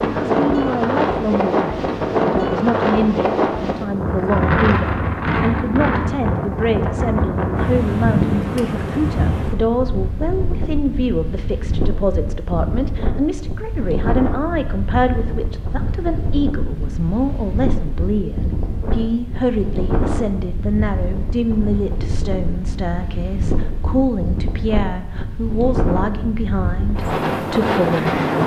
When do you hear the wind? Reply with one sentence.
The wind can be heard from 0.0 to 28.4 s.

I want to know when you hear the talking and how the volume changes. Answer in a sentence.
The talking can be heard from 0.1 to 28.1 s, at a steady volume.